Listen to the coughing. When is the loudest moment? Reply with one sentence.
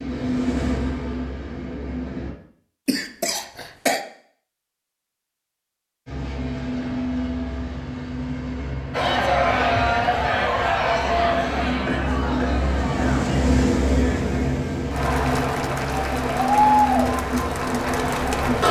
The volume of the coughing peaks at 4 seconds.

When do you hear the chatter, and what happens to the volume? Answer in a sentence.
You can hear the chatter from 8.9 to 18.6 s, getting quieter then louder.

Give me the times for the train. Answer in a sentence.
You can hear the train from 0.0 to 2.4 s and from 6.0 to 18.6 s.